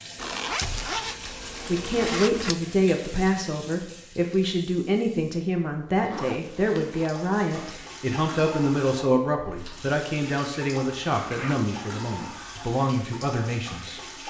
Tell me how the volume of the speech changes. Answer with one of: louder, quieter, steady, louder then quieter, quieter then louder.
steady.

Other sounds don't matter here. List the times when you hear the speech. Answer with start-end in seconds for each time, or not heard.
1.6-14.0.